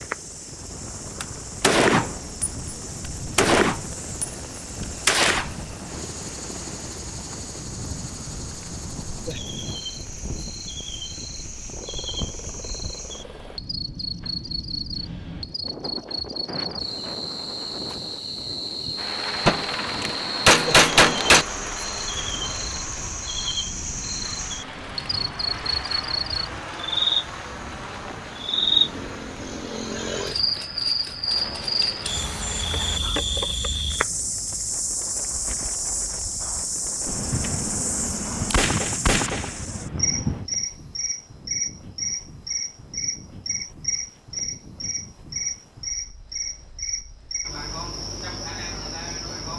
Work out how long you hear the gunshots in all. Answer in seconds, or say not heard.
8 s.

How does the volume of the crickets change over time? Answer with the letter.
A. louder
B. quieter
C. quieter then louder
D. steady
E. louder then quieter
A.